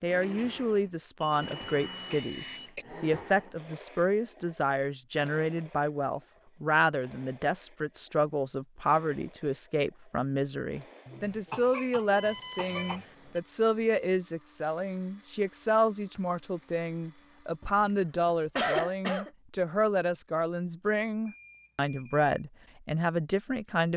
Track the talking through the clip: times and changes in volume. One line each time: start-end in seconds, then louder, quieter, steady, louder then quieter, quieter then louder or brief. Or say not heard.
0.0-23.9 steady.